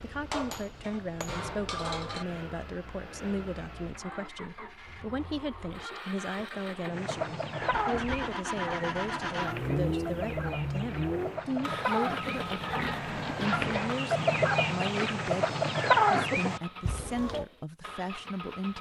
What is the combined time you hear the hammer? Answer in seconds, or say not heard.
2 s.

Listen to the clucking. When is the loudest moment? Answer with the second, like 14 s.
16 s.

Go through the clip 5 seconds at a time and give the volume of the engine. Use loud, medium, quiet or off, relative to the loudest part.
medium, loud, loud, medium.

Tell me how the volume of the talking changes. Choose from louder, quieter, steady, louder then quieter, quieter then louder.
steady.